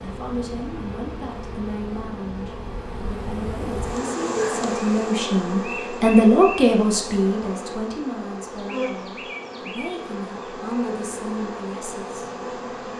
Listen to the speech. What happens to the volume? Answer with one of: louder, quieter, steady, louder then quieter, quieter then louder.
louder then quieter.